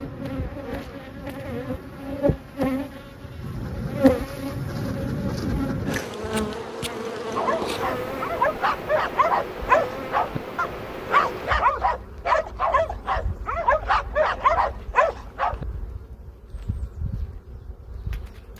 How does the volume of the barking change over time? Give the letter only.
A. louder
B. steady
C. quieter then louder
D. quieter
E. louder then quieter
B.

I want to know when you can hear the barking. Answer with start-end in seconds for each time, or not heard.
7.3-15.7.